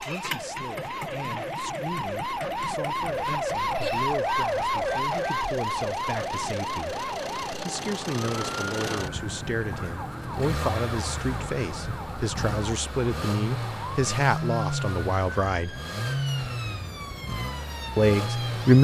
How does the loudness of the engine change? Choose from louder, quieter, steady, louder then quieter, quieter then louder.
louder.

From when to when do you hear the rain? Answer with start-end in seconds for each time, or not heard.
not heard.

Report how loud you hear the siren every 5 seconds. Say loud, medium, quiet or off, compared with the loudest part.
loud, loud, medium, medium.